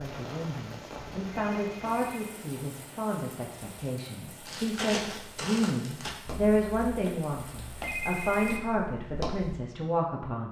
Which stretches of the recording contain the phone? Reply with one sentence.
You can hear the phone from 1.3 to 2.3 s and from 7.8 to 8.7 s.